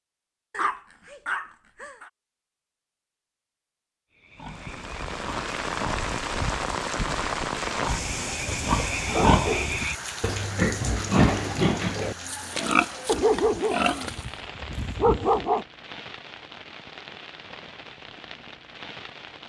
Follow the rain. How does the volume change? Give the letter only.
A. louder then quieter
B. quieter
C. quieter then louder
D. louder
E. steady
B.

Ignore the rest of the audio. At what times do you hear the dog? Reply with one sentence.
The dog can be heard from 0.5 to 2.1 s, from 8.4 to 9.8 s and from 13.1 to 15.7 s.